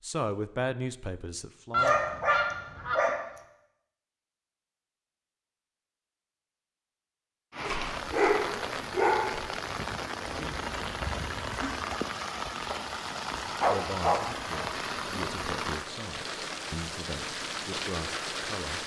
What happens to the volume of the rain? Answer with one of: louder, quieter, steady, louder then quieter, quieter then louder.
steady.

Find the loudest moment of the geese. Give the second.
2 s.